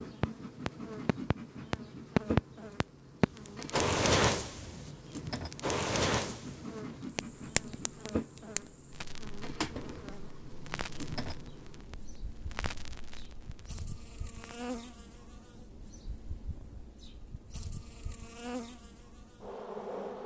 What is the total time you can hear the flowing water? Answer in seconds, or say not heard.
not heard.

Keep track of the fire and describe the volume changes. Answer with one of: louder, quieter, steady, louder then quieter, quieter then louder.
quieter.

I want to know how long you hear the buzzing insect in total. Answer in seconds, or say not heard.
20 s.